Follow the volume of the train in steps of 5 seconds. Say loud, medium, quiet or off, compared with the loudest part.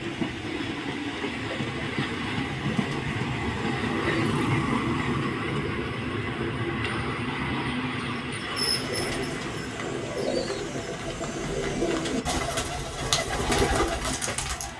loud, loud, quiet.